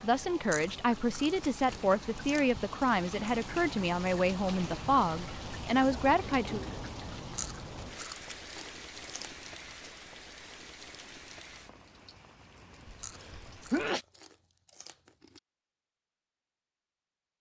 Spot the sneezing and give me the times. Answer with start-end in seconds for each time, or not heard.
13.0-14.1.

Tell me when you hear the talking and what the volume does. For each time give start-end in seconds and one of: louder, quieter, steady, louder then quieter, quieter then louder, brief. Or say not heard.
0.0-6.6 steady.